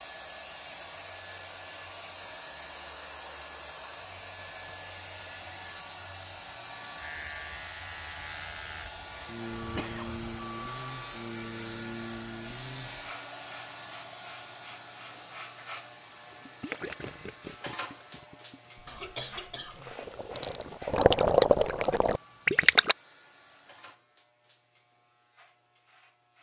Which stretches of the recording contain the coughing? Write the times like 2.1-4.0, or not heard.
9.6-10.2, 18.9-20.6.